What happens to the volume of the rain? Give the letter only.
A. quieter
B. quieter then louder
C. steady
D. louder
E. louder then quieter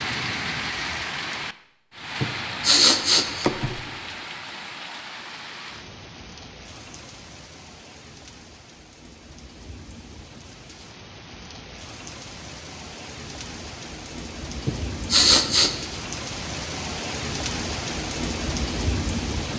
B.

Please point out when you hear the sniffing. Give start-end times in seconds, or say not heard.
2.2-3.8, 14.7-15.7.